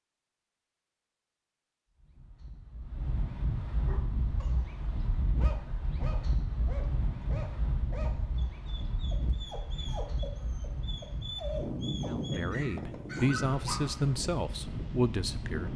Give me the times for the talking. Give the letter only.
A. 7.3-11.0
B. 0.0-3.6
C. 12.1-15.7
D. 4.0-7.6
C.